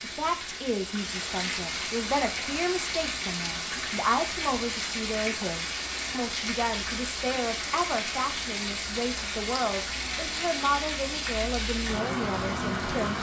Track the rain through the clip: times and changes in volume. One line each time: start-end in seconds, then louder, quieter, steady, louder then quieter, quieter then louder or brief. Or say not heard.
0.0-13.1 steady.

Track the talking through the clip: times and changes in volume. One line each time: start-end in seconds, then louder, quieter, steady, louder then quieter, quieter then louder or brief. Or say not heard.
0.0-13.1 steady.